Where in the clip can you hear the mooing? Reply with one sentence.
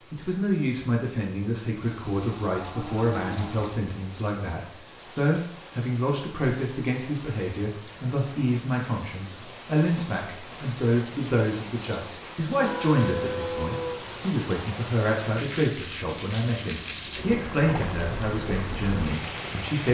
The mooing can be heard from 1.8 to 3.8 s and from 12.6 to 14.1 s.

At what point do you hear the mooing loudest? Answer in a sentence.
The loudest moment of the mooing is at 13 seconds.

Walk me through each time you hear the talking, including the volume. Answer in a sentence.
You can hear the talking from 0.1 to 19.8 s, at a steady volume.